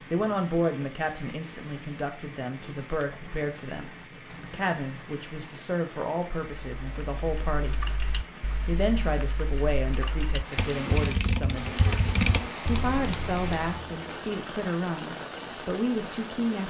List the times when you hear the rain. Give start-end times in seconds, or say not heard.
0.0-16.6.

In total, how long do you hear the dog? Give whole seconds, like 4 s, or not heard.
not heard.